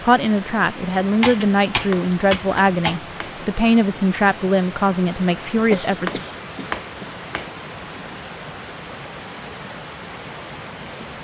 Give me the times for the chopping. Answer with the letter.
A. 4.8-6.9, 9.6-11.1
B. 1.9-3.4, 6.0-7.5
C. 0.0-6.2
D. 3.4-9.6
B.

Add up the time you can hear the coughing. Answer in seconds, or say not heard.
4 s.